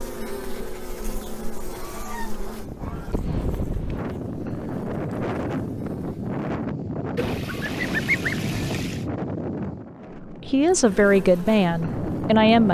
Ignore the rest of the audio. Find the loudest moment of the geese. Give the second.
8 s.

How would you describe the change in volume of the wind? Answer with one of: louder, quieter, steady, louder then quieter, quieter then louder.
louder then quieter.